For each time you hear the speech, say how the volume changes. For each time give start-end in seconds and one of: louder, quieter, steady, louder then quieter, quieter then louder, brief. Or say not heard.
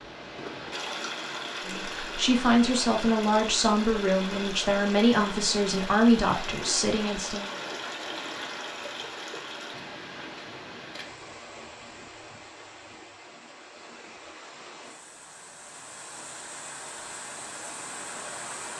1.6-7.5 steady.